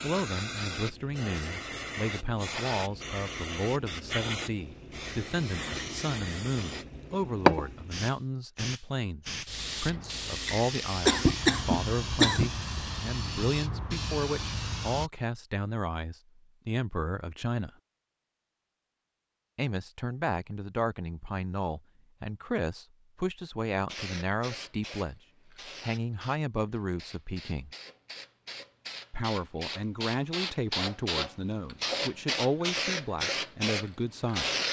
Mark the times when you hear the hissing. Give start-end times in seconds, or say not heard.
0.0-15.1, 23.9-34.6.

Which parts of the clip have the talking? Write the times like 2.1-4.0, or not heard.
0.0-17.7, 19.6-27.7, 29.1-34.6.